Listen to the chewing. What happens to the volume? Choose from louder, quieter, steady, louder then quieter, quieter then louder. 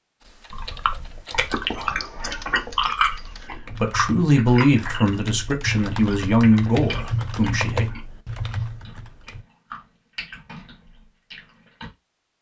quieter.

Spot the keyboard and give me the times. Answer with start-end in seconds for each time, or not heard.
0.2-9.4.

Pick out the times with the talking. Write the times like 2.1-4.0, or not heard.
3.5-7.8.